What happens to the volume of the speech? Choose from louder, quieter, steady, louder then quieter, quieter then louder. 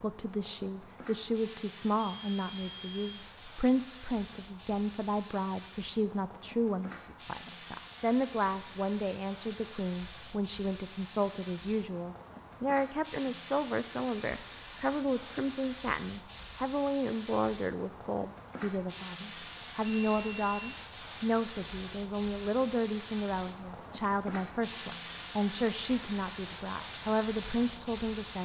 steady.